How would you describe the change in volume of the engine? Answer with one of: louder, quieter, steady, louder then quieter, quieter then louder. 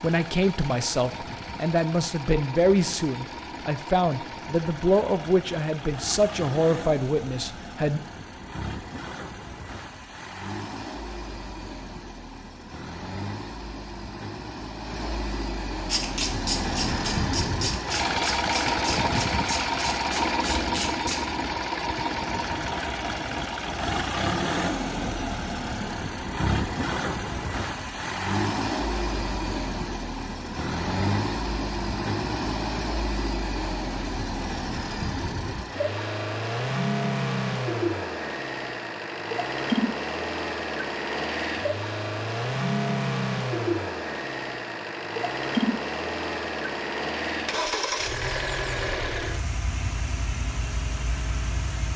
louder.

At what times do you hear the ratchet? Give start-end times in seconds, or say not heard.
15.8-21.2.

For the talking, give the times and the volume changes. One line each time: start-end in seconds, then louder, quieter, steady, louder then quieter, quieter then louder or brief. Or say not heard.
0.0-8.0 steady.